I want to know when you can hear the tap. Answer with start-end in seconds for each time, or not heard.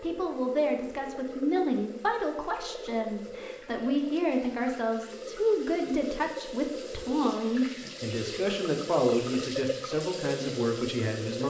0.0-11.4.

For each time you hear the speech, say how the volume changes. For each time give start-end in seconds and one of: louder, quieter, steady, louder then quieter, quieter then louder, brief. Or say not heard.
0.0-11.4 steady.